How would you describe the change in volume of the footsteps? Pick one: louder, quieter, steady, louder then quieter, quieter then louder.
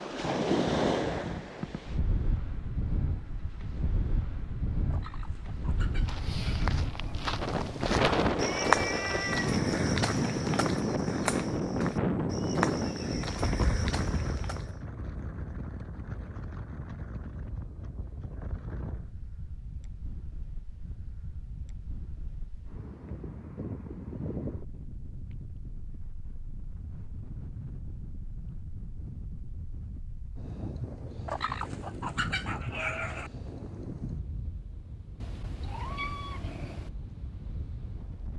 louder then quieter.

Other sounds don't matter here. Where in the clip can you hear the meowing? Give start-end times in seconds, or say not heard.
8.4-9.6, 35.2-36.9.